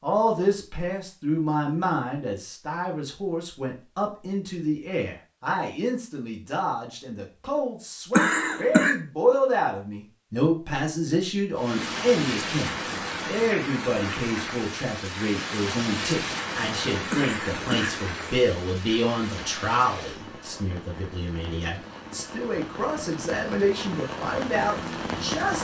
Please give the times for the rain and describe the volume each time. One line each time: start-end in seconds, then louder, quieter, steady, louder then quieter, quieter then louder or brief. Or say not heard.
11.6-25.5 quieter then louder.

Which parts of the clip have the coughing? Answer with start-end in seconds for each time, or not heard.
8.1-8.9, 17.1-18.4.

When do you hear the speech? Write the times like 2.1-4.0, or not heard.
0.0-25.5.